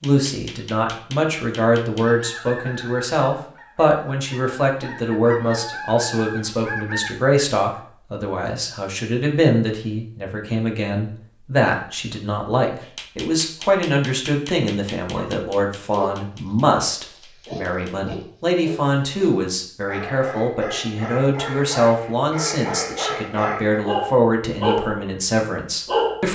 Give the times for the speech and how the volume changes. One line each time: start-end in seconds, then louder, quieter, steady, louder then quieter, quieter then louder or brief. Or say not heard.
0.0-26.2 steady.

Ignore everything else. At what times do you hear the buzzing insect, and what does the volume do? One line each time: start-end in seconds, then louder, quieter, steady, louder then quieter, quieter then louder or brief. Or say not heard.
not heard.